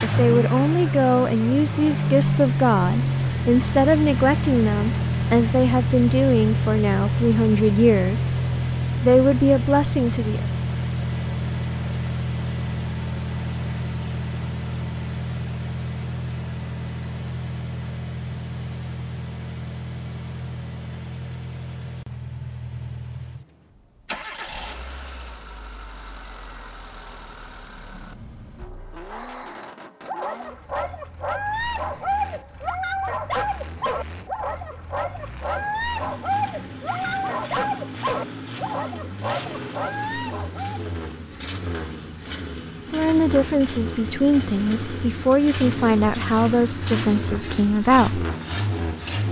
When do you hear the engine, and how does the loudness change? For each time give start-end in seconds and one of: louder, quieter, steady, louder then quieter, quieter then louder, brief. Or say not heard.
0.0-49.2 quieter then louder.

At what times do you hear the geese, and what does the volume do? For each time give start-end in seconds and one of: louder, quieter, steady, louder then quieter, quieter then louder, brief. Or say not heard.
not heard.